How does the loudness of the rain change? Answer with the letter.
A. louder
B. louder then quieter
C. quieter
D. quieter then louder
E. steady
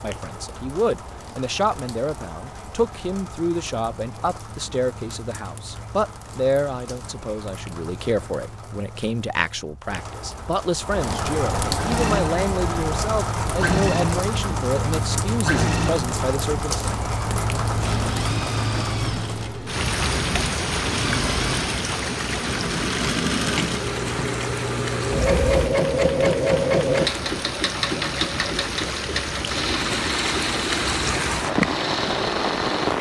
A.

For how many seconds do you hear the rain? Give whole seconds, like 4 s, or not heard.
33 s.